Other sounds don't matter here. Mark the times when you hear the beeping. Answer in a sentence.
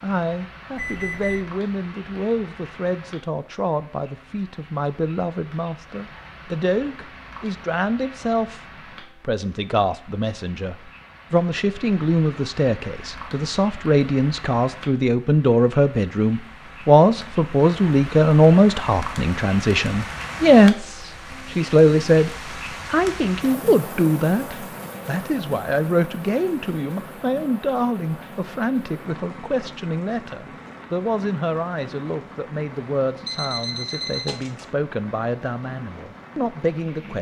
You can hear the beeping from 0.8 to 1.4 s and from 33.2 to 34.7 s.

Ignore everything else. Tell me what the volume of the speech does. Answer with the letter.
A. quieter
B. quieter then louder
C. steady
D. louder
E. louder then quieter
E.